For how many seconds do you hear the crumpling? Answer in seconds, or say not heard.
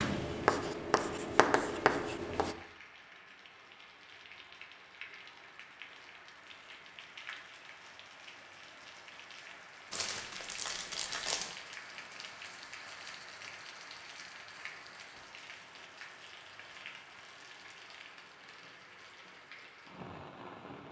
2 s.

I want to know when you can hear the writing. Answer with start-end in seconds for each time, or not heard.
0.0-2.5.